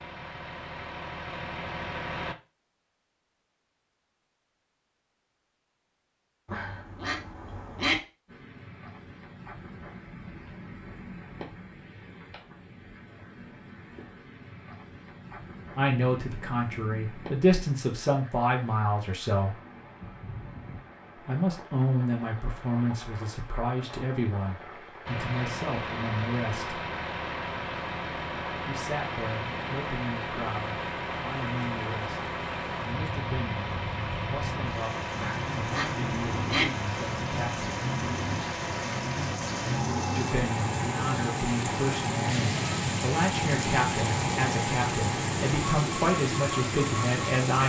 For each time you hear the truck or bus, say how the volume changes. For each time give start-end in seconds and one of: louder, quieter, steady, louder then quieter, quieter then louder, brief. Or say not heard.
0.0-2.4 brief
25.1-47.4 steady.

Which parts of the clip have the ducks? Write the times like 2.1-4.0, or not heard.
6.5-8.0, 35.1-36.7.